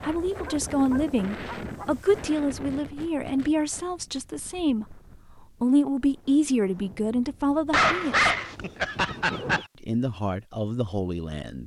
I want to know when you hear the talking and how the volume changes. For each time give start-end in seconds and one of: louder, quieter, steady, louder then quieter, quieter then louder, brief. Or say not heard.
0.0-5.0 quieter
5.6-8.3 brief
9.8-11.6 brief.